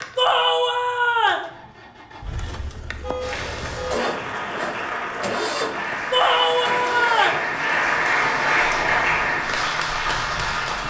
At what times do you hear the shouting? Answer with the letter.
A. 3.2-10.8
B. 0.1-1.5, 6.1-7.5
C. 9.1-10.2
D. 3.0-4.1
B.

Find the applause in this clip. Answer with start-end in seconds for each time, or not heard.
3.2-10.8.